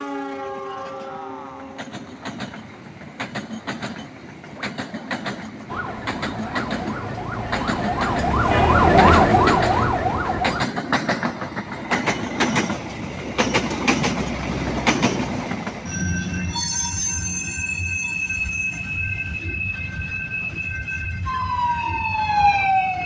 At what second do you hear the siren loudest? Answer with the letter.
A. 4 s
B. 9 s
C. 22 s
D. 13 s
B.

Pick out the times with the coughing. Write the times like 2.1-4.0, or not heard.
not heard.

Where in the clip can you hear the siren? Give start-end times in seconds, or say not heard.
5.7-10.7, 21.2-23.0.